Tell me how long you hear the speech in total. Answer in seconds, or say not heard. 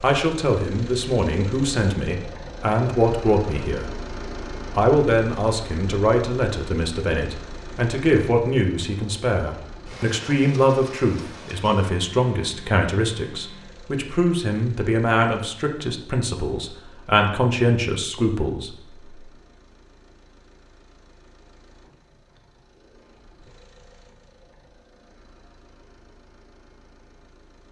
18 s.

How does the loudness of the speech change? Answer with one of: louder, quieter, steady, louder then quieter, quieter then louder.
steady.